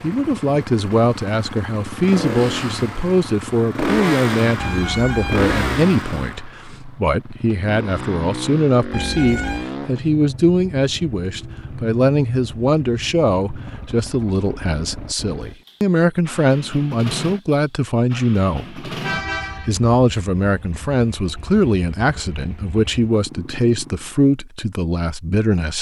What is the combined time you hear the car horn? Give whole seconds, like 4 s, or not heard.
3 s.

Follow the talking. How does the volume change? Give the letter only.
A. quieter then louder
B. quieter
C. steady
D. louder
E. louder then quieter
C.